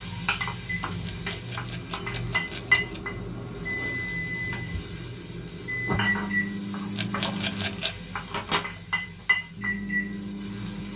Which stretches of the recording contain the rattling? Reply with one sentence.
The rattling can be heard from 1.1 to 3.0 s and from 7.0 to 8.0 s.